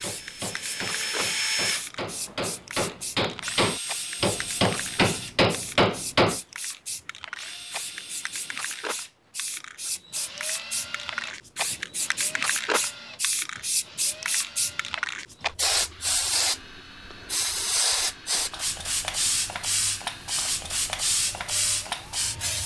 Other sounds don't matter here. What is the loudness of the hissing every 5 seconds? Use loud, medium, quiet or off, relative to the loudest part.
medium, medium, loud, loud, loud.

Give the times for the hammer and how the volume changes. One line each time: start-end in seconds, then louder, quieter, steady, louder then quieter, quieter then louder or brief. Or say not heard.
0.0-6.4 louder.